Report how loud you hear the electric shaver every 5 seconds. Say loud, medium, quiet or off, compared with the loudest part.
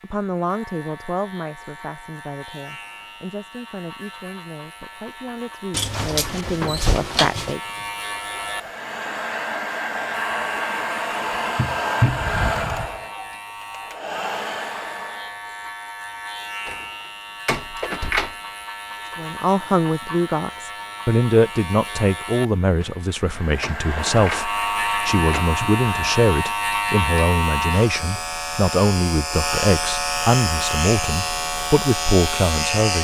quiet, medium, medium, medium, medium, loud, loud.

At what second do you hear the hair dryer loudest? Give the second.
12 s.